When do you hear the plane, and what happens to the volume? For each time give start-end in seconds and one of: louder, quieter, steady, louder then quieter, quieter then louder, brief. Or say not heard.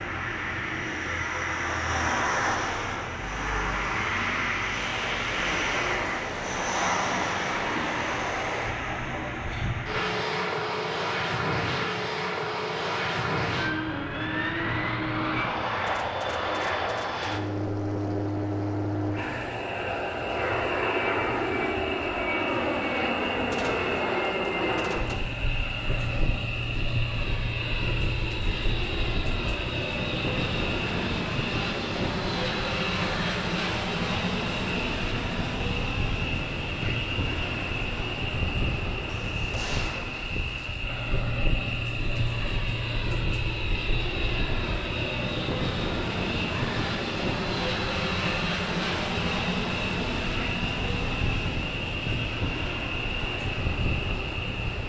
0.0-54.8 steady.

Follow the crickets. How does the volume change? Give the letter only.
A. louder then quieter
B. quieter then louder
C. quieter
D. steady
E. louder
D.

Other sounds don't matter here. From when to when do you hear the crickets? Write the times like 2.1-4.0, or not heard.
19.1-54.8.